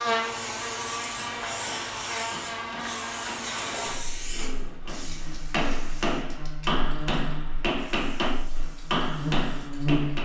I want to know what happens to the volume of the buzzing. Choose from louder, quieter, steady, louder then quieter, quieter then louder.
quieter then louder.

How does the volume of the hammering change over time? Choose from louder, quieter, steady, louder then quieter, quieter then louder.
louder.